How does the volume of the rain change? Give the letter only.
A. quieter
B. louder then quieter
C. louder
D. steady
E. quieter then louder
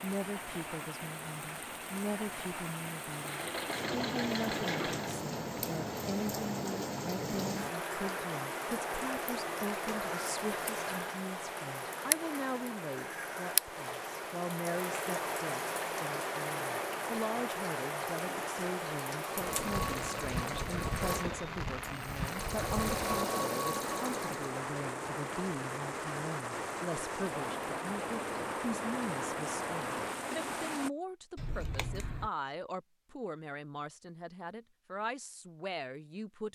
D.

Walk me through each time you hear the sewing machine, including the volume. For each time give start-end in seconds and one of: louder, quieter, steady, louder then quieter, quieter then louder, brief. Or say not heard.
3.1-5.3 brief
19.1-24.5 quieter then louder.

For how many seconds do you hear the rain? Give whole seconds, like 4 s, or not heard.
31 s.